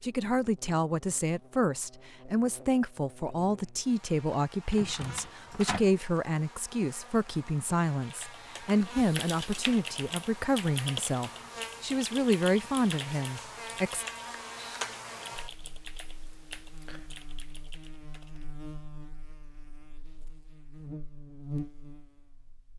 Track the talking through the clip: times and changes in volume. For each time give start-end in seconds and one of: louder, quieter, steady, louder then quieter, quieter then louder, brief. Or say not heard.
0.0-14.1 steady.